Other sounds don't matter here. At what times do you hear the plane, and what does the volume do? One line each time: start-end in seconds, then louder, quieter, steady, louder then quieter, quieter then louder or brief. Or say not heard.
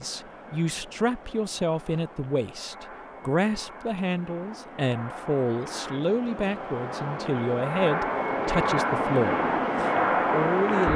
0.0-10.9 louder.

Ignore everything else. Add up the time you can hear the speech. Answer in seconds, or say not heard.
11 s.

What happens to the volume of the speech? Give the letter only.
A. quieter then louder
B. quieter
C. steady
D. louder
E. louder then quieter
C.